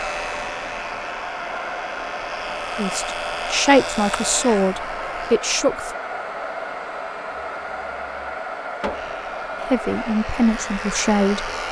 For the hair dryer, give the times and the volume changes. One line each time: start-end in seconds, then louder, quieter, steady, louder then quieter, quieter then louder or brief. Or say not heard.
0.0-11.6 steady.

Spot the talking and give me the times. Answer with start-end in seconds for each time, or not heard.
2.8-6.0, 9.6-11.5.